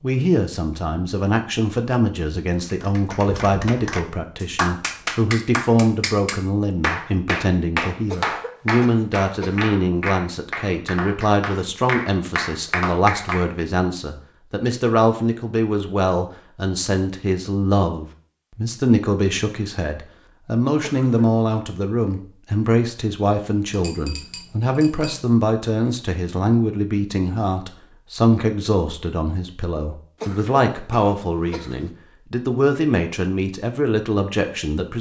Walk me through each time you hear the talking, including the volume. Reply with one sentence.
The talking can be heard from 0.0 to 34.9 s, at a steady volume.